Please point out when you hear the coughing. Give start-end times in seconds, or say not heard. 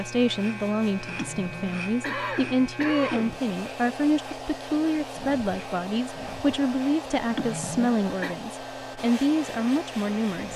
1.1-3.5, 7.3-8.3.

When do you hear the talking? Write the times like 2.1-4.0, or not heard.
0.0-10.5.